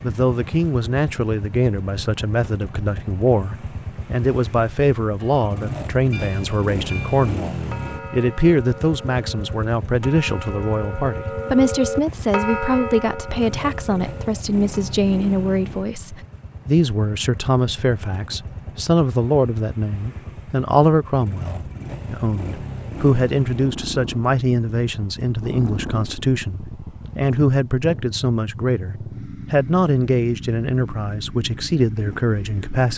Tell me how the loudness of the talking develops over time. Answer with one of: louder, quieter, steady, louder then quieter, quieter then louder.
steady.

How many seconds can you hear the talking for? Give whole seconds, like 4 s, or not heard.
33 s.